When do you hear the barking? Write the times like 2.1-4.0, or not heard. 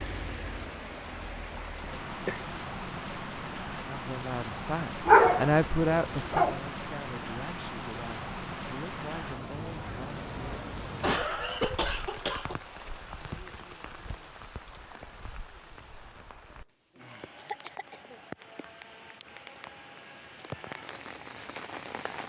5.0-6.6.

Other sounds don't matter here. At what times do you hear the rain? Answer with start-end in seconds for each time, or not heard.
0.0-22.2.